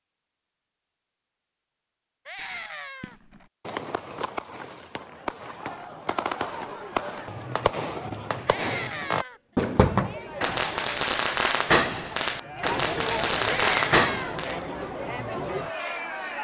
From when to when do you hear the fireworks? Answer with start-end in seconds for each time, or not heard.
3.0-14.6.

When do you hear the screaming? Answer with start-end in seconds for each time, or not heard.
2.2-3.1, 8.4-9.4, 13.4-14.3.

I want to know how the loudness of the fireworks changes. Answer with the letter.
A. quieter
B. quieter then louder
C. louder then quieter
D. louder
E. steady
D.